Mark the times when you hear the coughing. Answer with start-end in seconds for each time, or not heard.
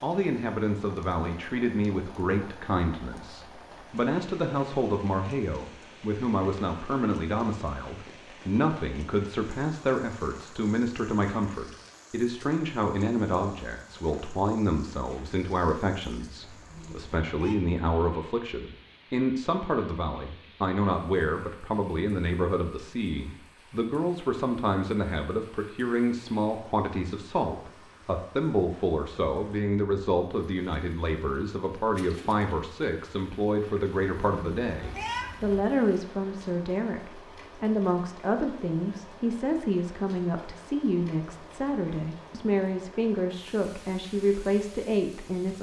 not heard.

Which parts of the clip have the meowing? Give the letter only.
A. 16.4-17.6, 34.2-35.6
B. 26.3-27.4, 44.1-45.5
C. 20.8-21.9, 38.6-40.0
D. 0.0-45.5
A.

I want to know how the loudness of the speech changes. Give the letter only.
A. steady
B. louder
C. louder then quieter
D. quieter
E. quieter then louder
A.